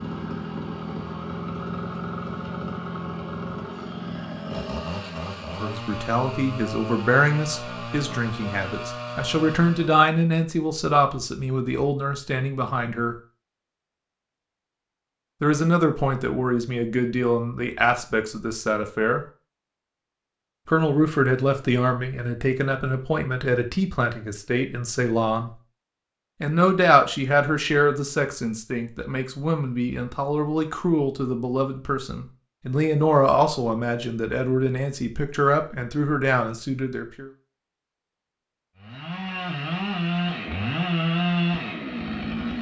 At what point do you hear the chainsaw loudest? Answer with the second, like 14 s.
41 s.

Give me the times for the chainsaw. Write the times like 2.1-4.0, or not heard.
0.0-10.1, 38.8-42.5.